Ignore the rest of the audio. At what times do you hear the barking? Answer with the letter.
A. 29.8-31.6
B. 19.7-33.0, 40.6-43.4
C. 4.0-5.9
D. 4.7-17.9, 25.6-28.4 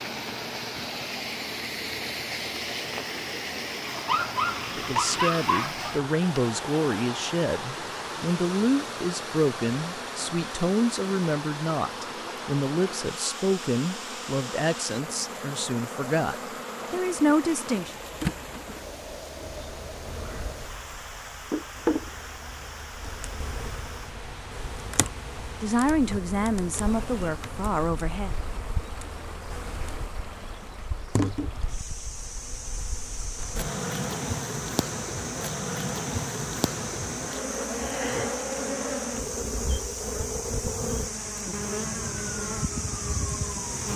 C.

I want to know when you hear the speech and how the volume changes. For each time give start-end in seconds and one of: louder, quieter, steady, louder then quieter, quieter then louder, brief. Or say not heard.
4.7-17.9 steady
25.6-28.4 brief.